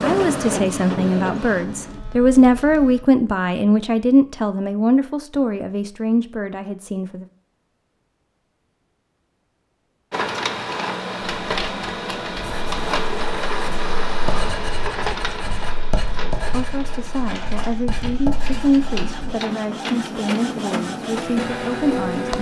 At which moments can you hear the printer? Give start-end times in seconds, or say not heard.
0.0-3.0, 10.1-22.3.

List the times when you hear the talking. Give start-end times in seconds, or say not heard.
0.0-7.2, 16.2-22.3.